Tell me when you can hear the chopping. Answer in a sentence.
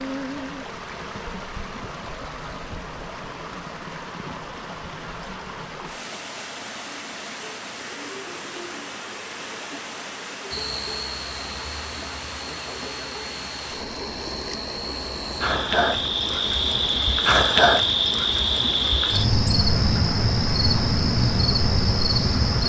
The chopping can't be heard in this clip.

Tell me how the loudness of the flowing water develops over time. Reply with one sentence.
The volume of the flowing water stays about the same.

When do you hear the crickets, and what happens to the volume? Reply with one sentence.
You can hear the crickets from 10.5 to 22.6 s, getting louder.